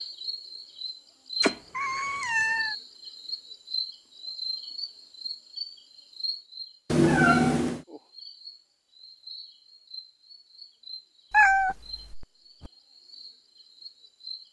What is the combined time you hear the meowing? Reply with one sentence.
The meowing can be heard for 4 seconds in total.